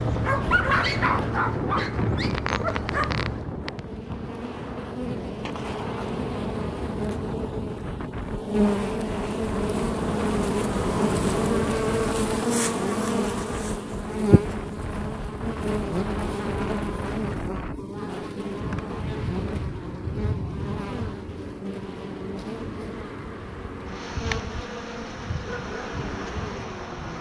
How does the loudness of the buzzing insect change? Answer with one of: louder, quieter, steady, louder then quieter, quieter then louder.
louder then quieter.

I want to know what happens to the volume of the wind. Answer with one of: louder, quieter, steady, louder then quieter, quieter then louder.
quieter.